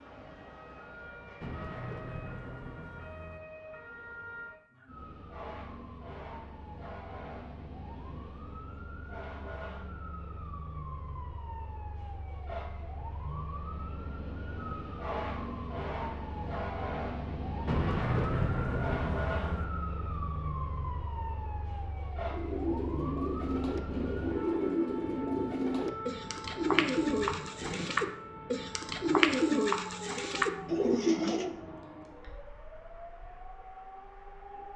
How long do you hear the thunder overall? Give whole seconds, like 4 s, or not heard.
4 s.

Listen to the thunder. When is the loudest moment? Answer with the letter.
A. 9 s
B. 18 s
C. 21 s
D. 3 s
B.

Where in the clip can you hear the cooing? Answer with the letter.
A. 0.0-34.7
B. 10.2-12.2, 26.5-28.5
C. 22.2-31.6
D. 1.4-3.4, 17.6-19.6
C.